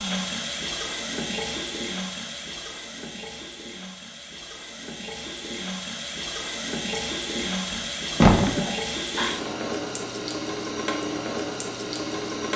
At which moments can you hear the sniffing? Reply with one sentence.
The sniffing can be heard from 8.4 to 9.4 s.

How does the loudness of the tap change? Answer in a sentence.
The loudness of the tap goes down, then up.